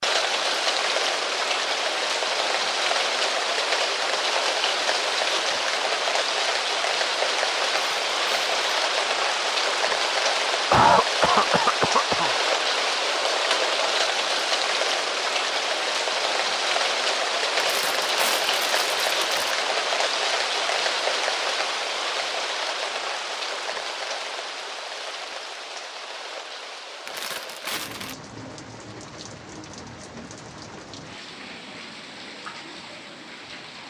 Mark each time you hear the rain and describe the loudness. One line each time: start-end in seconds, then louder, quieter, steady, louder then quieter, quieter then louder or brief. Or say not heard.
0.0-33.8 quieter.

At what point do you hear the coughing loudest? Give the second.
11 s.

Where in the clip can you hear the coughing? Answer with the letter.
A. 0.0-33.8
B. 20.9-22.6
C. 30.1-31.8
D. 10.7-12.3
D.